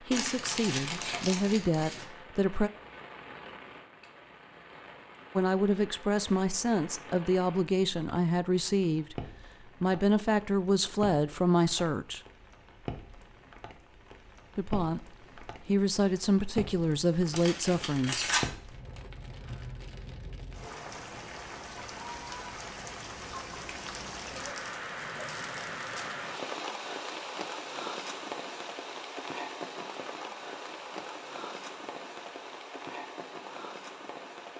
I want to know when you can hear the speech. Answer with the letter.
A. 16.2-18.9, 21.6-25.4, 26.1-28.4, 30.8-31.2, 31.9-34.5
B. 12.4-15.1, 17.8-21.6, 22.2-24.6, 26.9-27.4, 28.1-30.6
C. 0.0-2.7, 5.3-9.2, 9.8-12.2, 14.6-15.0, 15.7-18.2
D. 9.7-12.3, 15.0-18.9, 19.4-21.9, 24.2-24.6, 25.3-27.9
C.